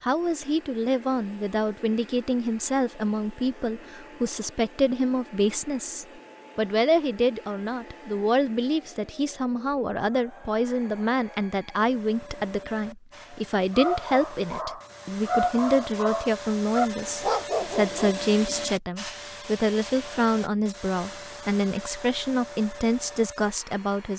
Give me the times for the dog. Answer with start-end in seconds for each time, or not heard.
13.7-18.1.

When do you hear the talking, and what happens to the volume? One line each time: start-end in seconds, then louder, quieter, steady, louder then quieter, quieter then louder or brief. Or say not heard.
0.0-24.1 steady.